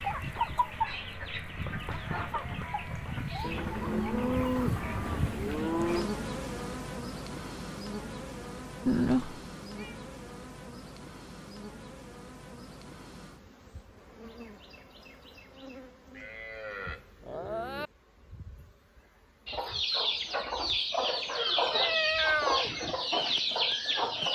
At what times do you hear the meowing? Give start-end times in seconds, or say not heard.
8.8-9.9, 21.7-22.7.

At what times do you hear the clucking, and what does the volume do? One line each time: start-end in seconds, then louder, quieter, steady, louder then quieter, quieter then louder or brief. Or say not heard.
0.0-6.0 quieter
19.4-24.2 steady.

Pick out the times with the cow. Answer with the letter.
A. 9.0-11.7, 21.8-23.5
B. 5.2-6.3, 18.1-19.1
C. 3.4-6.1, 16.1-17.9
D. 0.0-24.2
C.